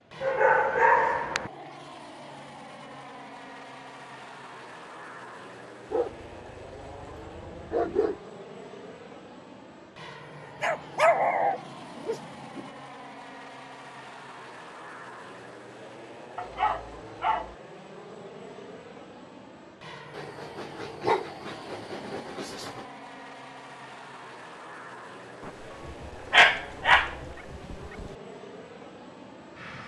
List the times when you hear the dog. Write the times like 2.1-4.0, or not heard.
0.2-1.5, 5.9-8.2, 10.6-12.6, 16.4-17.6, 20.1-22.9, 25.4-28.1.